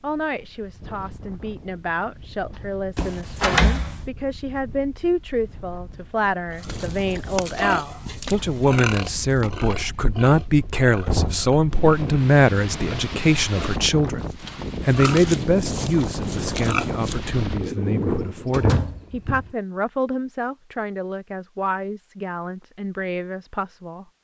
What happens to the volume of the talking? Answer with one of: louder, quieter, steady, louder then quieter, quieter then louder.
louder then quieter.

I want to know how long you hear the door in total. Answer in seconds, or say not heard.
4 s.